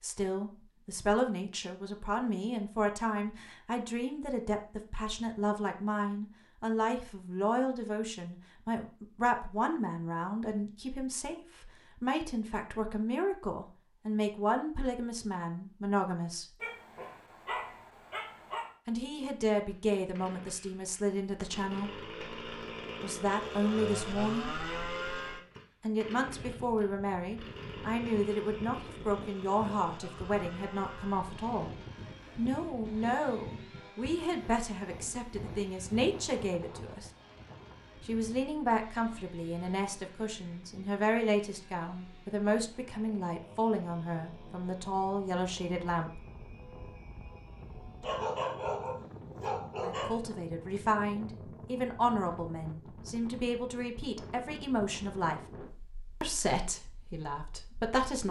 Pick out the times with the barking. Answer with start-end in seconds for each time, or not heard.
16.6-18.7, 48.0-50.2.